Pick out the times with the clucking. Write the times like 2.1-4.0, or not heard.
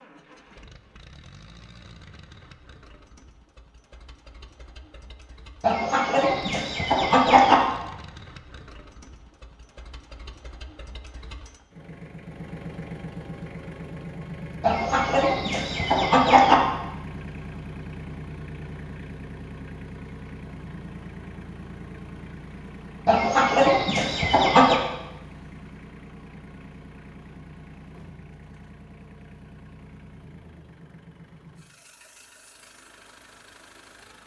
5.6-7.5, 14.6-16.6, 23.1-24.8.